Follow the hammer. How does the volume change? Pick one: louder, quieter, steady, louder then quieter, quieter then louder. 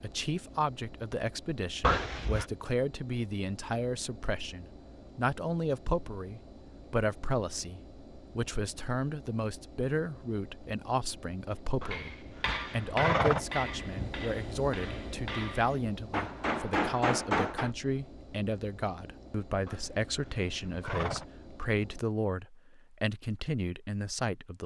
quieter then louder.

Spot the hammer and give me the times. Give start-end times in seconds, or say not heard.
11.9-17.7.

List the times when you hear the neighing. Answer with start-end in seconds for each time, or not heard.
1.8-2.5, 11.8-14.2, 19.6-21.2.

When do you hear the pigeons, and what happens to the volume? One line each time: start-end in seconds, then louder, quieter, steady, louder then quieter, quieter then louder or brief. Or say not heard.
not heard.